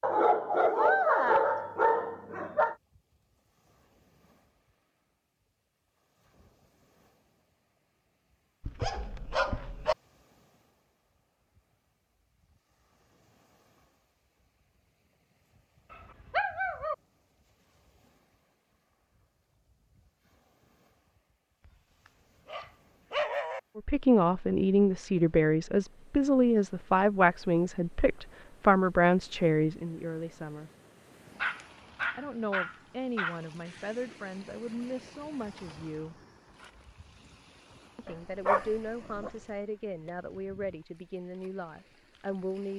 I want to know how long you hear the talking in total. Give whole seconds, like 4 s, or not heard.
16 s.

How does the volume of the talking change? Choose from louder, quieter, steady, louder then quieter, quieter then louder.
quieter.